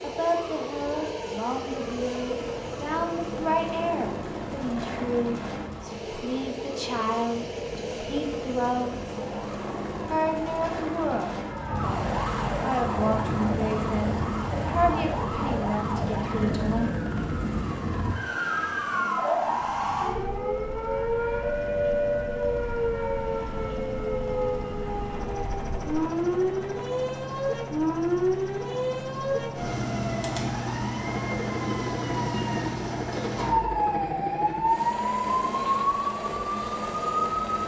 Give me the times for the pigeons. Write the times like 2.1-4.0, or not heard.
not heard.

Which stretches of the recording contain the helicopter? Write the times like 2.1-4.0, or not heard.
0.0-37.6.